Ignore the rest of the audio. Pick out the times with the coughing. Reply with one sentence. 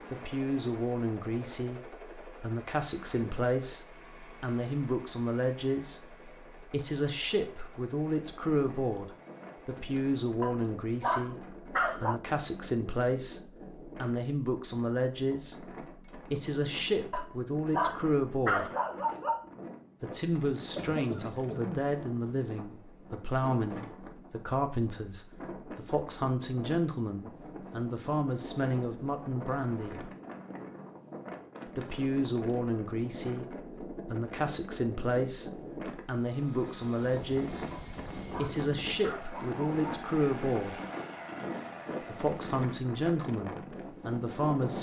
You can hear the coughing from 20.8 to 21.9 s.